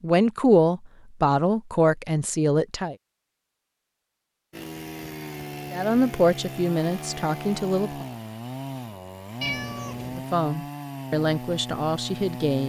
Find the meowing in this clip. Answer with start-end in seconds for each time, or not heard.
9.4-10.2.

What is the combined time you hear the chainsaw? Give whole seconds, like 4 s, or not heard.
8 s.